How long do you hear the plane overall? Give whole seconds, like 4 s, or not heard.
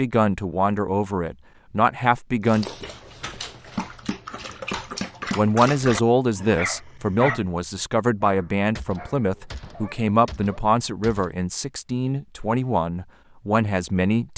not heard.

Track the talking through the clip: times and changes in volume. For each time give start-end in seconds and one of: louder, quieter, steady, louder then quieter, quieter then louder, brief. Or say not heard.
0.0-2.6 brief
5.3-14.3 steady.